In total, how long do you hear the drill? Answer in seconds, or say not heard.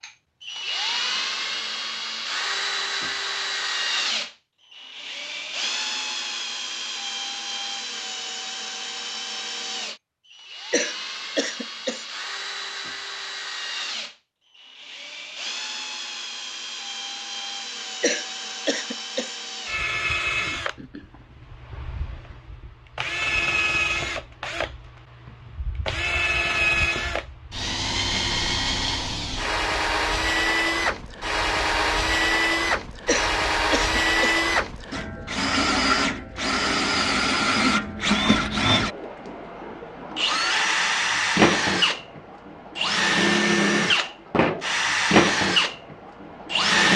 47 s.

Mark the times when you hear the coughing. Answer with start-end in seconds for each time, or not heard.
10.7-12.1, 18.0-19.4, 33.0-34.4.